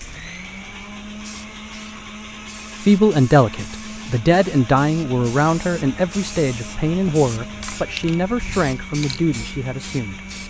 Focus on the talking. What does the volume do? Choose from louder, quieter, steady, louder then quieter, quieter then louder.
quieter.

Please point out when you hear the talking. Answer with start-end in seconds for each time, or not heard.
2.8-10.2.